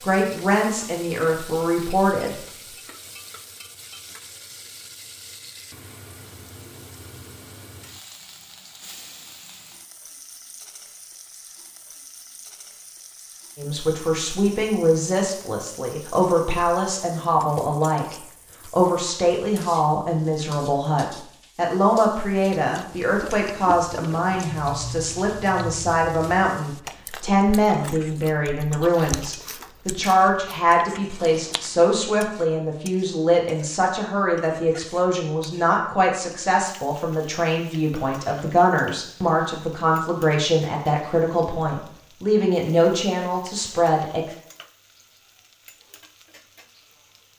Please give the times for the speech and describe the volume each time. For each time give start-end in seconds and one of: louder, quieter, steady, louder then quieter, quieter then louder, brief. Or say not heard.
0.0-2.4 brief
13.6-44.2 steady.